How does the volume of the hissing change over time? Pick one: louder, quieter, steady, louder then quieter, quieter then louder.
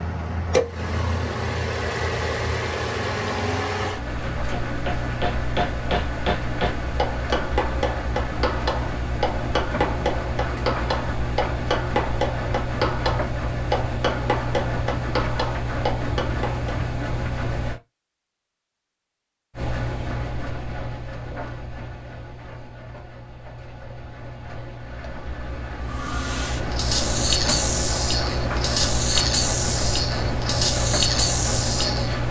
steady.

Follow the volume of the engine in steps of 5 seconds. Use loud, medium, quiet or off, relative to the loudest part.
loud, loud, loud, loud, medium, loud, loud.